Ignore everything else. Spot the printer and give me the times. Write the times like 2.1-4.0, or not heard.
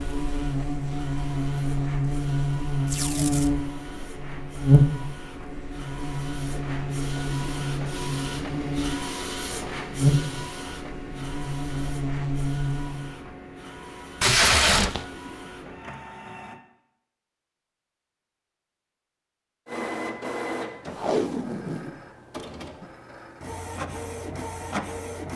0.0-16.6, 19.6-25.3.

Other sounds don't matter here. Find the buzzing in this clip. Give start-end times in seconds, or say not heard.
0.0-13.2.